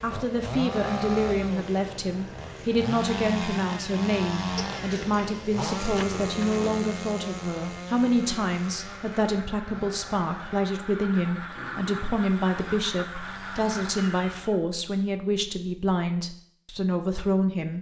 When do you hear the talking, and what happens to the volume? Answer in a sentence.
The talking can be heard from 0.0 to 17.7 s, at a steady volume.